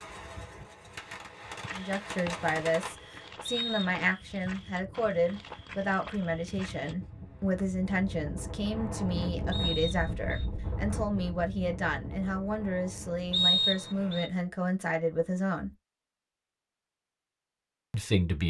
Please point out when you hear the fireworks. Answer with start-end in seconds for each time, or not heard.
0.0-3.0.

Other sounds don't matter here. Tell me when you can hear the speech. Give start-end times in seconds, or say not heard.
1.7-15.8, 17.9-18.4.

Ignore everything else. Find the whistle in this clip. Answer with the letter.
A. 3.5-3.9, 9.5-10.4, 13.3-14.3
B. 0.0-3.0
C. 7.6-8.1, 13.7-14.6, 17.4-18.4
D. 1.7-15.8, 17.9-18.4
A.